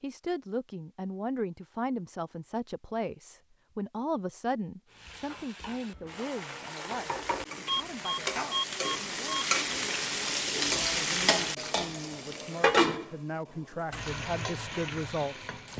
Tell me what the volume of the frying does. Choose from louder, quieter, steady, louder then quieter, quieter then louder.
louder then quieter.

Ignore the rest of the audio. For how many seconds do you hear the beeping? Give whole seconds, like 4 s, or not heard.
2 s.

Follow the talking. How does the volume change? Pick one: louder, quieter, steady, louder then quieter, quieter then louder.
quieter then louder.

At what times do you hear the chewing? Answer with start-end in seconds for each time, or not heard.
not heard.